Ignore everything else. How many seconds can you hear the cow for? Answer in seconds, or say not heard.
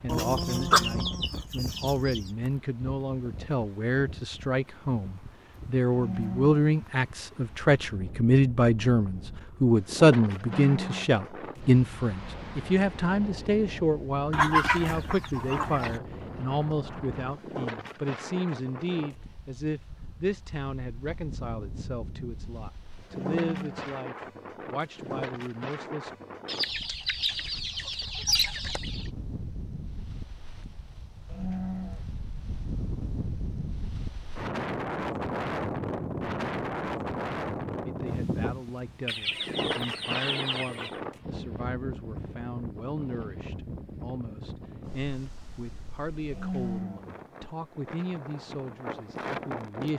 4 s.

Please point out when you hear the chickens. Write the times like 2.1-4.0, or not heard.
0.1-2.2, 14.3-16.0, 26.4-29.1, 39.0-41.0.